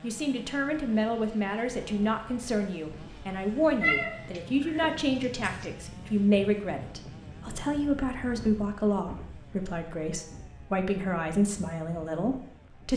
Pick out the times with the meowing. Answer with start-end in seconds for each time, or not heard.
3.8-5.7.